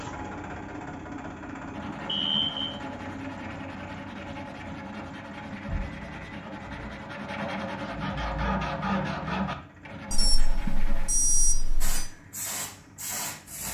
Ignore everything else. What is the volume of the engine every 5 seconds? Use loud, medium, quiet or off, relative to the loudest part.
loud, medium, quiet.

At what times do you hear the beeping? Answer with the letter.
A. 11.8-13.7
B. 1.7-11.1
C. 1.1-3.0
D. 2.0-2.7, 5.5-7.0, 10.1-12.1
D.